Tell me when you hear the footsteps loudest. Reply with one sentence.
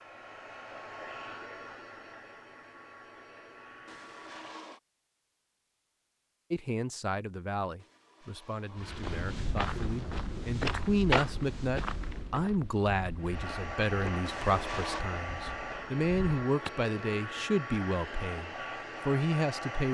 The loudest moment of the footsteps is at 11 seconds.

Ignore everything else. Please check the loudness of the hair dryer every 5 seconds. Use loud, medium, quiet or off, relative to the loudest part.
medium, off, loud, loud.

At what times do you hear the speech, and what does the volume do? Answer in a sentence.
You can hear the speech from 6.5 to 19.9 s, getting louder.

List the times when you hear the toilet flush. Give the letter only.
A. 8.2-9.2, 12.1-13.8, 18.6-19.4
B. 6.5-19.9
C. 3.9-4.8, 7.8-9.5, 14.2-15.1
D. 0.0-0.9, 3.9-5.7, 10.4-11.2
C.